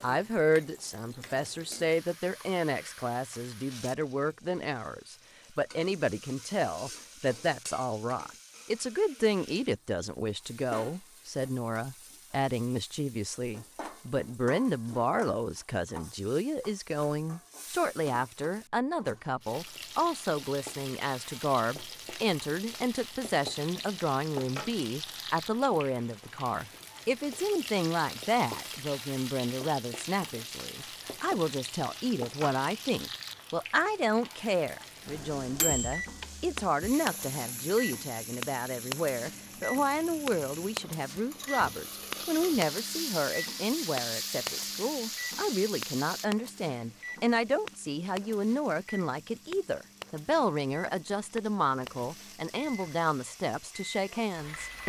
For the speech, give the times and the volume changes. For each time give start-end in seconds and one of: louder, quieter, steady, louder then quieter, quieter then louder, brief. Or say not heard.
0.0-54.8 steady.